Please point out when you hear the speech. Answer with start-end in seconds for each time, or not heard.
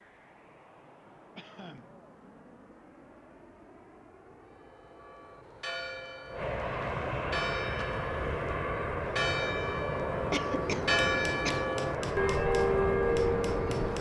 not heard.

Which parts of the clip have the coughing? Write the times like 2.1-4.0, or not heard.
1.4-1.9, 10.3-11.7.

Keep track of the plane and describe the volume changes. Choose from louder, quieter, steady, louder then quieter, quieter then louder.
louder.